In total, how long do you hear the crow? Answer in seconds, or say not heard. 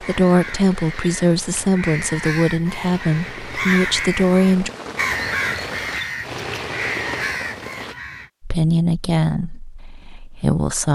8 s.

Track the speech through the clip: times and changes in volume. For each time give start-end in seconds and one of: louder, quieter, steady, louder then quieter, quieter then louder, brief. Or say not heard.
0.0-4.7 steady
8.4-10.9 brief.